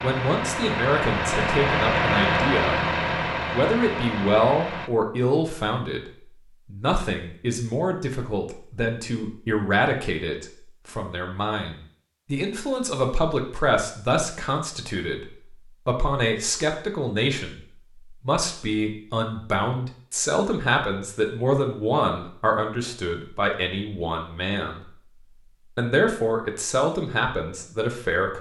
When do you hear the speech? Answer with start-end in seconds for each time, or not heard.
0.0-2.8, 3.5-6.1, 6.7-24.9, 25.8-28.3.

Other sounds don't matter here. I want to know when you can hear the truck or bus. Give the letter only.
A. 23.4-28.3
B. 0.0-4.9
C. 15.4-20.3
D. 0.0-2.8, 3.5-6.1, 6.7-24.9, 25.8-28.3
B.